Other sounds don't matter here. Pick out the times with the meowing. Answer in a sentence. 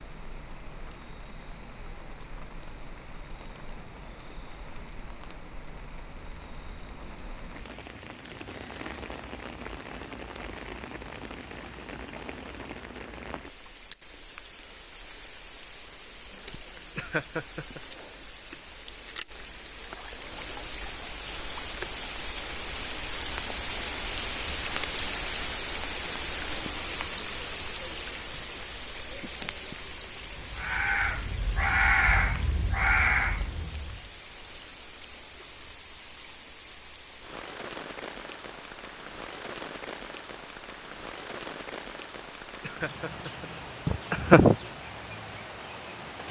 The meowing can't be heard in this clip.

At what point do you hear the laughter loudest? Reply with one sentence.
The volume of the laughter peaks at 44 seconds.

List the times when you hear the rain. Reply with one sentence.
The rain can be heard from 0.0 to 46.2 s.